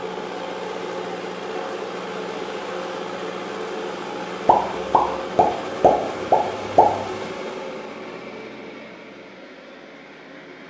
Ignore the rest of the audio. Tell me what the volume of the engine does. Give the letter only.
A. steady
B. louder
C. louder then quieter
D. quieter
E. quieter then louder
D.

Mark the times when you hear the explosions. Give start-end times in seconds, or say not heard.
4.5-6.9.